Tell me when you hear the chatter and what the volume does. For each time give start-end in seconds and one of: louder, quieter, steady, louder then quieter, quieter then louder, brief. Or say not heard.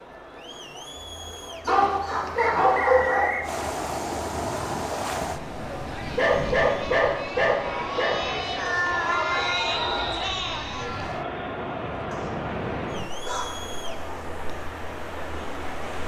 0.0-16.0 louder then quieter.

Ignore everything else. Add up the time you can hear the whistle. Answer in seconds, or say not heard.
2 s.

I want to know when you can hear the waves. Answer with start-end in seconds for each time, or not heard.
3.4-16.0.